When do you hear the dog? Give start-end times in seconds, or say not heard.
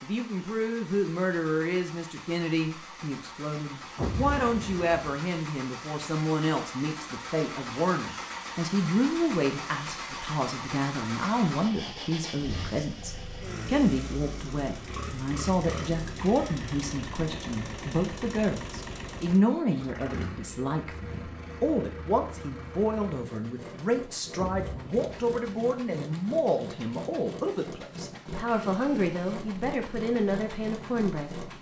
not heard.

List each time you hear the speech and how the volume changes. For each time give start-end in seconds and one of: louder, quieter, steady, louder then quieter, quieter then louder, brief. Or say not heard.
0.0-31.5 steady.